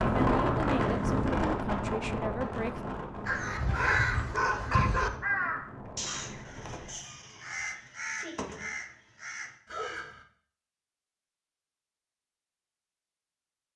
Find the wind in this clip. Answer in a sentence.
You can hear the wind from 0.0 to 7.0 s.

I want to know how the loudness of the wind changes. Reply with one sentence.
The loudness of the wind goes down.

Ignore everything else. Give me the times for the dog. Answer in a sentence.
The dog can be heard from 3.6 to 5.1 s and from 9.7 to 10.2 s.